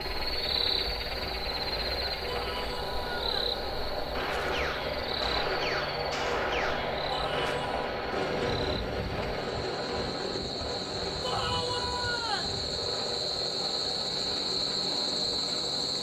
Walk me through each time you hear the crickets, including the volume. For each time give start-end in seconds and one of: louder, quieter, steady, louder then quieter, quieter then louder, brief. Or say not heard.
0.0-15.9 quieter then louder.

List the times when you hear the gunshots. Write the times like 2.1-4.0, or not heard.
4.1-7.6.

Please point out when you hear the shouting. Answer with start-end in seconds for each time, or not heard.
2.2-3.5, 7.1-7.8, 11.2-12.6.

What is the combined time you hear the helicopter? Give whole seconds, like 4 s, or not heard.
16 s.